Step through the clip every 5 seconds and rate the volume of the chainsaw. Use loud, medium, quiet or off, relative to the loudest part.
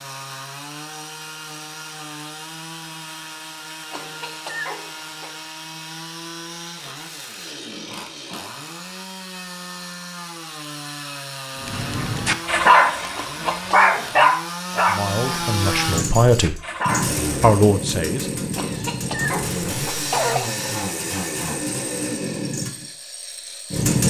medium, medium, medium, loud, loud.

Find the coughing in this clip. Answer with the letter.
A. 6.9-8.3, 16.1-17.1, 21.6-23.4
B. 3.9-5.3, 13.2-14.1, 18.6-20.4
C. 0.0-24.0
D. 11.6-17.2
B.